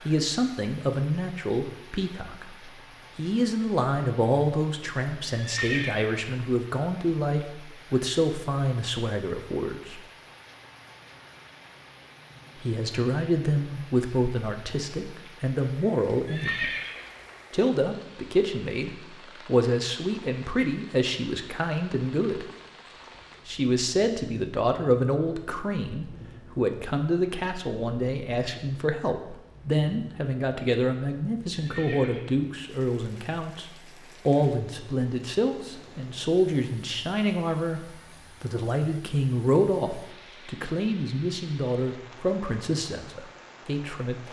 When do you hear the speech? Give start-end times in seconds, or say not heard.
0.1-10.0, 12.6-16.7, 17.5-22.5, 23.4-44.1.